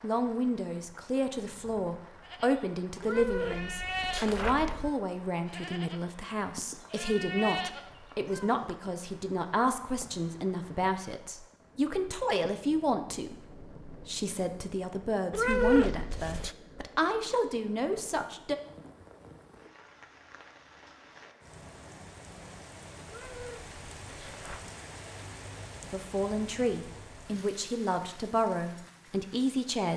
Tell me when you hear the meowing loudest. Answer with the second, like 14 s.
16 s.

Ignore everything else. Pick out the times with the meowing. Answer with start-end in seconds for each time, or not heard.
3.0-4.9, 15.3-16.6, 23.1-24.8.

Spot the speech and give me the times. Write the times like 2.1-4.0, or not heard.
0.0-18.6, 25.8-29.9.